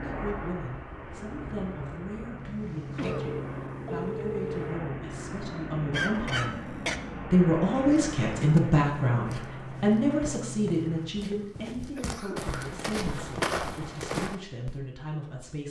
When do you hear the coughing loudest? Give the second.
6 s.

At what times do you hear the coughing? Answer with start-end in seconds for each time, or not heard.
2.6-3.4, 5.9-7.0, 11.3-12.8.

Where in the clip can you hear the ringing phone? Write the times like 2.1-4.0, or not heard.
3.0-4.8.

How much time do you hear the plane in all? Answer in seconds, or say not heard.
11 s.